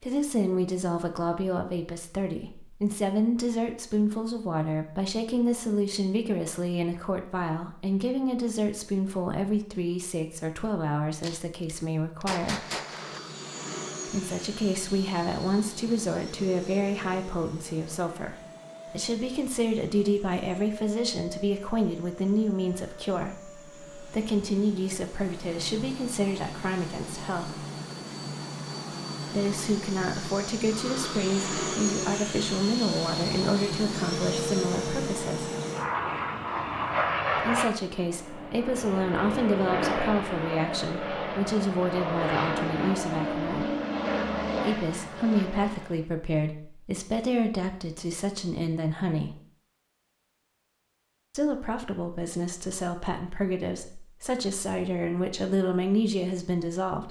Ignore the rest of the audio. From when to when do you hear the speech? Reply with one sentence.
You can hear the speech from 0.0 to 12.7 s, from 14.1 to 27.6 s, from 29.3 to 35.5 s, from 37.4 to 43.8 s, from 44.6 to 49.4 s and from 51.4 to 57.0 s.